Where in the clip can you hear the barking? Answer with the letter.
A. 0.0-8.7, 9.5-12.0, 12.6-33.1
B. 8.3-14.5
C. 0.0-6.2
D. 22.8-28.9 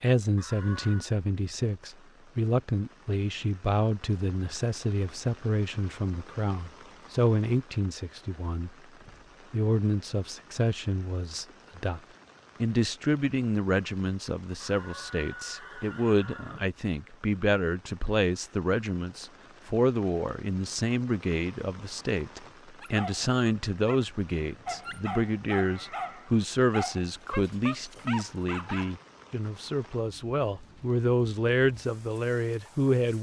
D.